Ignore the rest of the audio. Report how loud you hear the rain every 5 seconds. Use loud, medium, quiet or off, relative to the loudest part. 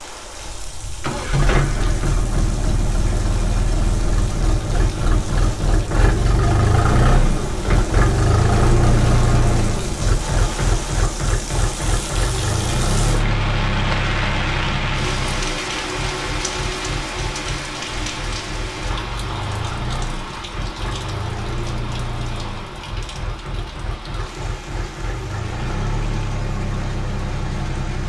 medium, medium, loud, loud, medium, medium.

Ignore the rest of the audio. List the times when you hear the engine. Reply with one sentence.
The engine can be heard from 0.0 to 28.0 s.